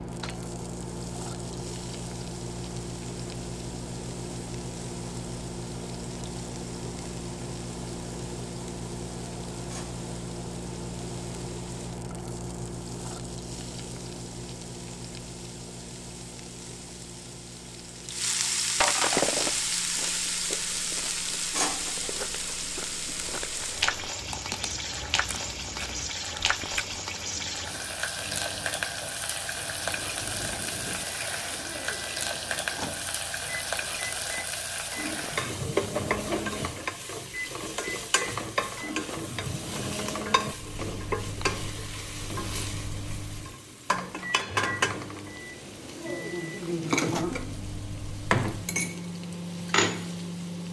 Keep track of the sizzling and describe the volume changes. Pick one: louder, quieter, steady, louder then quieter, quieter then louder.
louder.